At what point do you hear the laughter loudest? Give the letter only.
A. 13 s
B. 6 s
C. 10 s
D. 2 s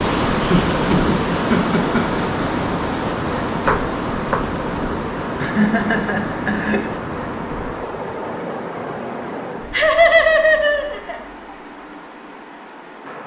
C.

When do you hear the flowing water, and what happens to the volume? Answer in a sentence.
You can hear the flowing water from 0.0 to 13.2 s, getting quieter.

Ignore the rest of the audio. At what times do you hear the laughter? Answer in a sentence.
The laughter can be heard from 0.4 to 2.4 s, from 5.4 to 6.9 s and from 9.7 to 11.2 s.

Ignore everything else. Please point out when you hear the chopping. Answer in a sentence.
You can hear the chopping from 3.5 to 4.5 s.